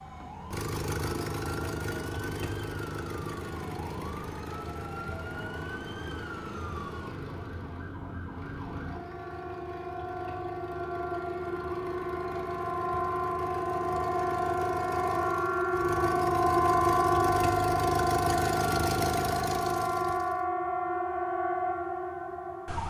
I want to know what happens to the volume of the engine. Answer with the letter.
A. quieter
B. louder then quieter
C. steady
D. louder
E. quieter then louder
E.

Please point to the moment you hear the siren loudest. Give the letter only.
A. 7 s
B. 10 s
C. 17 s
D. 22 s
C.